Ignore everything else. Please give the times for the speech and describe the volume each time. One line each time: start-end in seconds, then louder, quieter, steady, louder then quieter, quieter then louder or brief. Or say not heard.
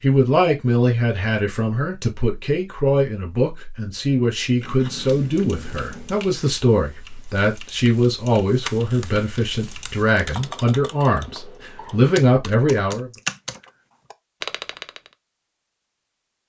0.0-13.1 steady.